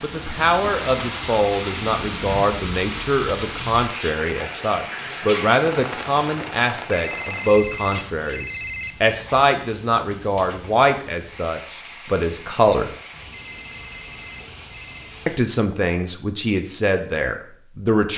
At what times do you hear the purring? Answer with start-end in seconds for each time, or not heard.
not heard.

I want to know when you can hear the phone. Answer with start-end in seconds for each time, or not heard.
0.8-2.5, 6.9-8.9, 13.3-15.2.